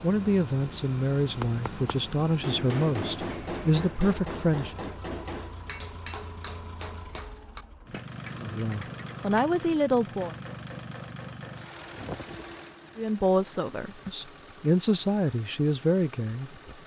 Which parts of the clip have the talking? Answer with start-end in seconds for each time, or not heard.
0.0-4.8, 8.4-10.3, 12.9-16.8.